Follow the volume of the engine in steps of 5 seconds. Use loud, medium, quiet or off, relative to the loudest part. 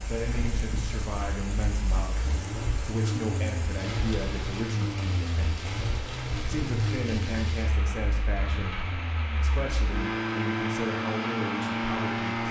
medium, medium, loud.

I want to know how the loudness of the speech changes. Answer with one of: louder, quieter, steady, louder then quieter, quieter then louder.
steady.